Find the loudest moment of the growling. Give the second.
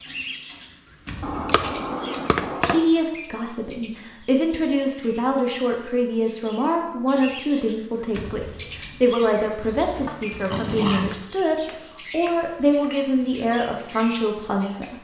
11 s.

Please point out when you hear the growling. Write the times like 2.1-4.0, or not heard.
9.6-11.2.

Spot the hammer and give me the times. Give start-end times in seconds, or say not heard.
1.2-2.9, 11.1-12.9.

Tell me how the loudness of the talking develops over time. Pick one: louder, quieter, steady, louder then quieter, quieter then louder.
steady.